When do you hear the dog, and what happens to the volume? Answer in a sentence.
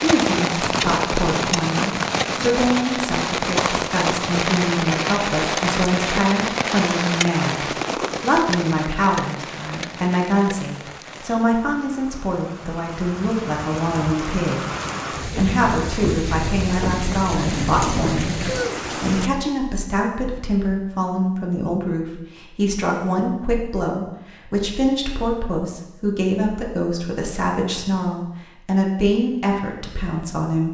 You can't hear the dog here.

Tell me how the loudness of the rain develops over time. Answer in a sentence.
The volume of the rain goes down, then up.